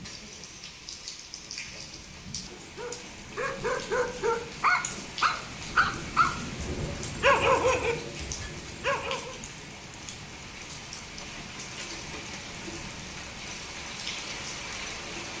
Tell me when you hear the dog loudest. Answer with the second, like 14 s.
7 s.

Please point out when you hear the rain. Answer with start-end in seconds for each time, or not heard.
0.0-15.3.